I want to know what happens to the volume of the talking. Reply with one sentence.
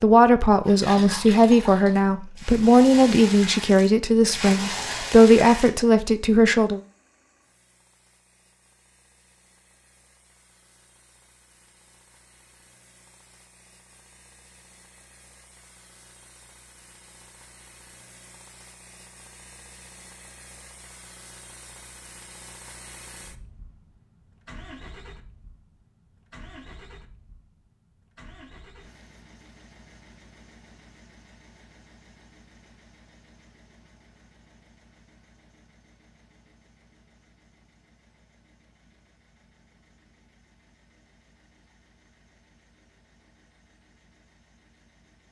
The volume of the talking stays about the same.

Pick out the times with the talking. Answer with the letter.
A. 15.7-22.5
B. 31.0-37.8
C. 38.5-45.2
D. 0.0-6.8
D.